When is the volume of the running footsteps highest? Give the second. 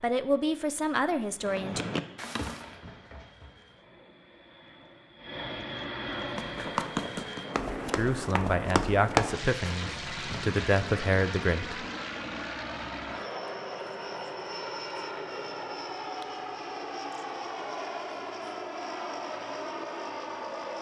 9 s.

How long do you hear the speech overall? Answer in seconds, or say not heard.
6 s.